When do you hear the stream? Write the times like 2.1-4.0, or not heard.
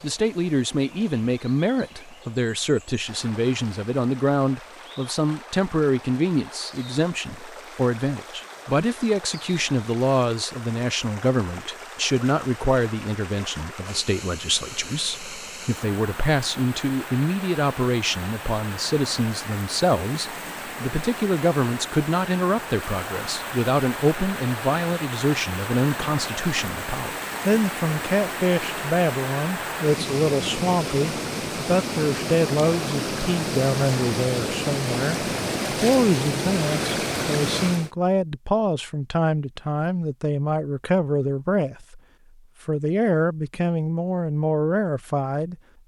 0.0-37.9.